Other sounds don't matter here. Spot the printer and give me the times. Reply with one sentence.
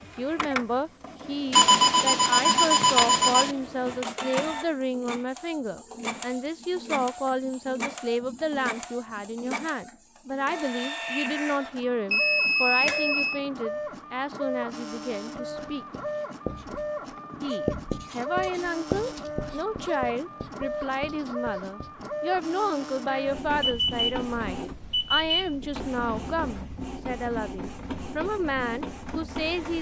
You can hear the printer from 0.0 to 29.7 s.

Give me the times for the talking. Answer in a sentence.
The talking can be heard from 0.0 to 15.8 s and from 17.4 to 29.7 s.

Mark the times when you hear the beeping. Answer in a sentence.
The beeping can be heard from 1.5 to 3.5 s, from 12.1 to 13.4 s, from 23.1 to 24.1 s and from 24.9 to 25.4 s.